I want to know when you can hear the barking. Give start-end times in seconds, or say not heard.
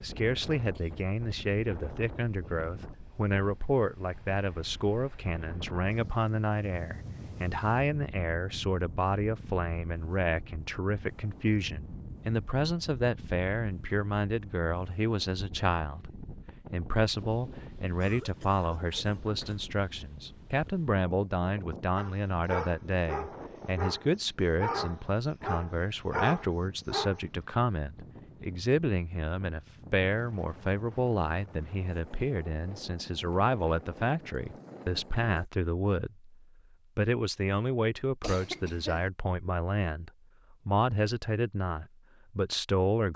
21.9-27.2.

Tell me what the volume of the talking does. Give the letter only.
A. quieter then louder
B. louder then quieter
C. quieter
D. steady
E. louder
D.